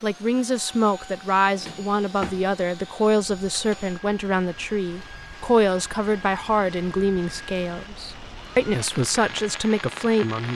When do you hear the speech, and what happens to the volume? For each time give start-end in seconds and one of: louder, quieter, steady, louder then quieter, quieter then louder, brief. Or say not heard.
0.0-10.5 steady.